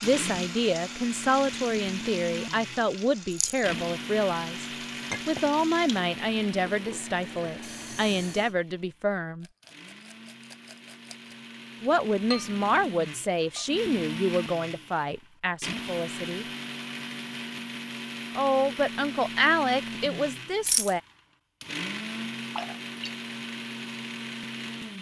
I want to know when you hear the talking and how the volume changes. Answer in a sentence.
The talking can be heard from 0.0 to 9.4 s, at a steady volume; from 11.8 to 16.4 s, getting quieter; and briefly from 18.4 to 21.0 s.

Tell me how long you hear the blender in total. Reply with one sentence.
You can hear the blender for 25 seconds altogether.